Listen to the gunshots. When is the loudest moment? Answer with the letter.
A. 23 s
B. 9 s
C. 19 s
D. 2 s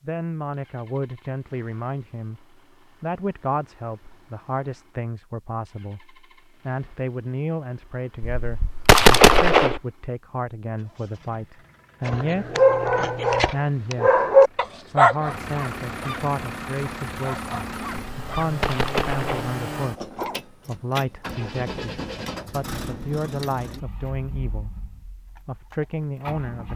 B.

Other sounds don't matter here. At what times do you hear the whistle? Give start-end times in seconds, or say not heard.
not heard.